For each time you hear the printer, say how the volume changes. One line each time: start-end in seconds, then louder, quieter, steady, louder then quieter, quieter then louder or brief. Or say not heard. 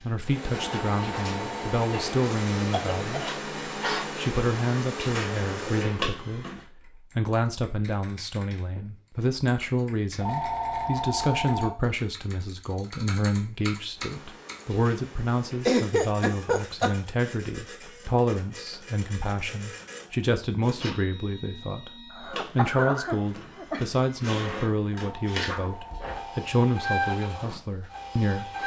0.2-6.7 steady
13.9-28.6 louder.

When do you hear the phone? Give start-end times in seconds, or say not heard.
0.7-1.9, 10.2-11.7, 24.9-26.4.